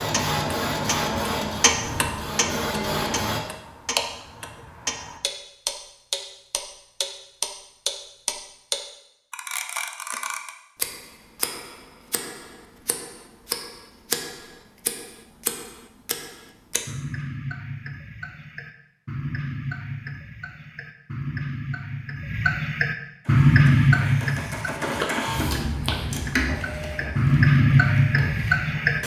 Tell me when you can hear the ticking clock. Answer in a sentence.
You can hear the ticking clock from 0.0 to 29.0 s.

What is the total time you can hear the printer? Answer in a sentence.
The printer can be heard for 9 seconds in total.